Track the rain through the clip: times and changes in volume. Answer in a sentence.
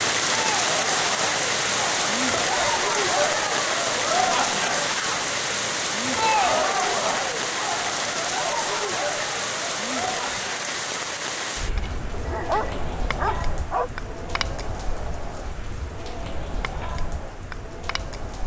You can hear the rain from 0.0 to 18.4 s, getting quieter.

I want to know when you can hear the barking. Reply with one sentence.
You can hear the barking from 12.1 to 13.9 s.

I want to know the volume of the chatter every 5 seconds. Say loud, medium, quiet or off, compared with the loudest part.
loud, loud, medium, quiet.